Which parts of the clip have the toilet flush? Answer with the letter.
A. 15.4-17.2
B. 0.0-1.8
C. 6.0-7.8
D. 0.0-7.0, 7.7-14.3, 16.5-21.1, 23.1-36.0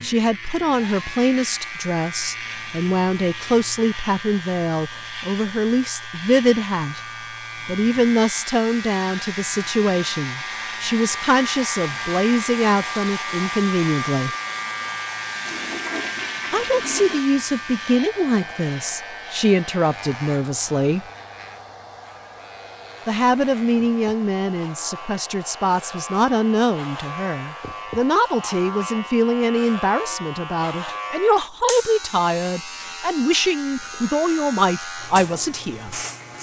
A.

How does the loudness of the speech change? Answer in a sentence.
The volume of the speech stays about the same.